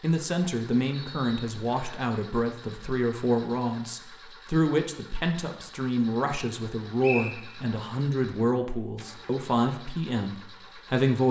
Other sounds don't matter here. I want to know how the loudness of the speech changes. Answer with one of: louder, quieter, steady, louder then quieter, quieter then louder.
steady.